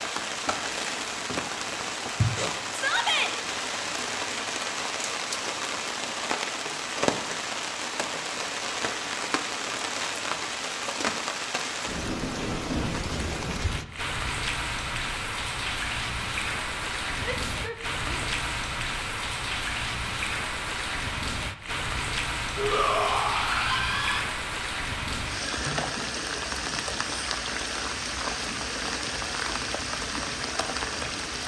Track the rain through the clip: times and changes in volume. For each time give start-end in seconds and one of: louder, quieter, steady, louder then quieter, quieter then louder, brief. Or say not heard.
0.0-31.4 steady.